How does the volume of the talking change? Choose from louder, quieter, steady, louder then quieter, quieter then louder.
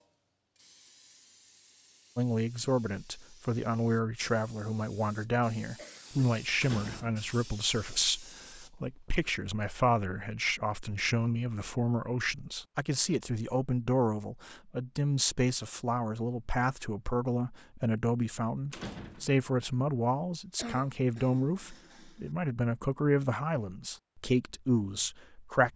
steady.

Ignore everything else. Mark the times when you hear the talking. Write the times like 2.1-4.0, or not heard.
2.1-25.7.